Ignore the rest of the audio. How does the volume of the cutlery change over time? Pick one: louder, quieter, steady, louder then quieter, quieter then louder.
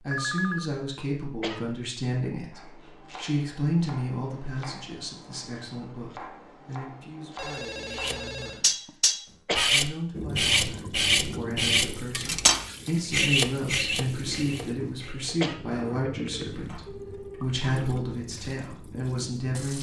quieter.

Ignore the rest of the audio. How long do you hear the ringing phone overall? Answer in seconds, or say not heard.
3 s.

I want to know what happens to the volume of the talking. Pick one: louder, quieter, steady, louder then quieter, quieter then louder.
quieter then louder.